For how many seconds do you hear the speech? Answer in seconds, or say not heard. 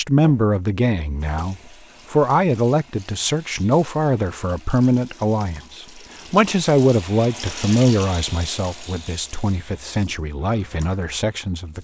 12 s.